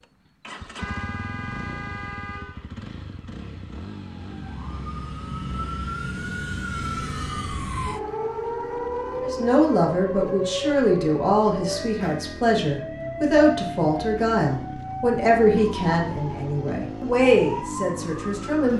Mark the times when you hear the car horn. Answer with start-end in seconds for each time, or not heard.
0.8-2.6, 11.7-12.4.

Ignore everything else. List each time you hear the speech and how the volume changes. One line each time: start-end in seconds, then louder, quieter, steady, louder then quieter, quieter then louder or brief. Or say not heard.
9.2-18.7 steady.